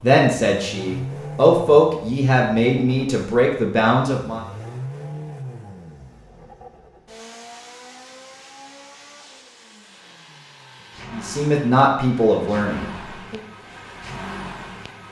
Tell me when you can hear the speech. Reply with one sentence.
The speech can be heard from 0.0 to 4.4 s and from 11.1 to 13.4 s.